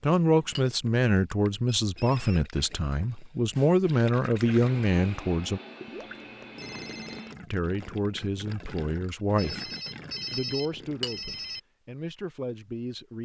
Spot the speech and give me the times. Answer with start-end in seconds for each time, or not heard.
0.0-5.6, 7.4-9.7, 10.3-13.1.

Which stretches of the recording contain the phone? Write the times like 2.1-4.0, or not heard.
1.9-2.4, 6.0-7.3, 9.3-11.6.